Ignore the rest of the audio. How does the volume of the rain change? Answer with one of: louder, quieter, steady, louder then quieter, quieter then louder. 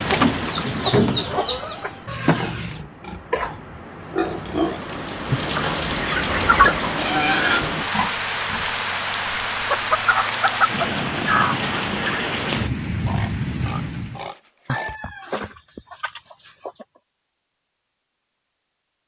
louder.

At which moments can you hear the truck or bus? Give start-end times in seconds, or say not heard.
not heard.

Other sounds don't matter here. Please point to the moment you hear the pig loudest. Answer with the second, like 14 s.
7 s.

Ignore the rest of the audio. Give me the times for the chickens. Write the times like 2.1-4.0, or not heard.
0.1-2.8, 5.3-6.8, 9.7-12.3, 14.7-16.9.